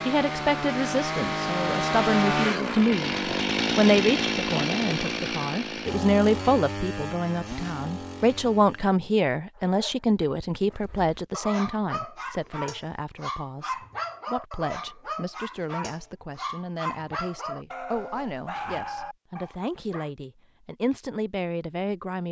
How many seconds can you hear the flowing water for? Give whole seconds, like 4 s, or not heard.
not heard.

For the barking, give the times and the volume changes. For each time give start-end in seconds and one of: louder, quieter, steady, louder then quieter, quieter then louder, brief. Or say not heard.
9.8-20.1 steady.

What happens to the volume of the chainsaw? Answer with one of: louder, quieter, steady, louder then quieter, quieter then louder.
quieter.